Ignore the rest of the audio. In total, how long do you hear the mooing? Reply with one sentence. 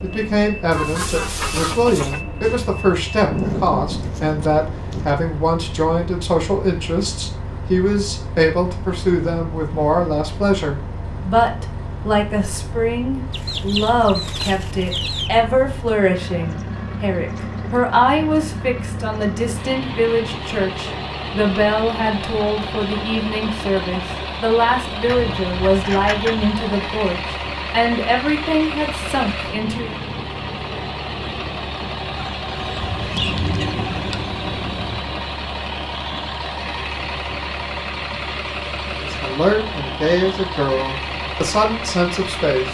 You can't hear the mooing here.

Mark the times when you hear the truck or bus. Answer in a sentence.
The truck or bus can be heard from 0.0 to 42.6 s.